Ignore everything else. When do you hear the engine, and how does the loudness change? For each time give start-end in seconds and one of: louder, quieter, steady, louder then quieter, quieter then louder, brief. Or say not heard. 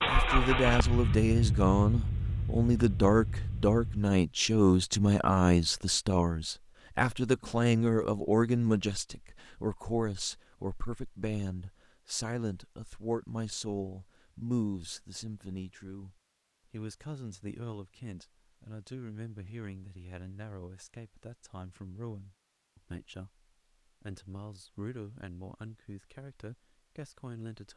0.0-4.0 quieter.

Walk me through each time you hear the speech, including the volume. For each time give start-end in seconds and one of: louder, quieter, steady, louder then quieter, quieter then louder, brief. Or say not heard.
0.0-27.7 quieter.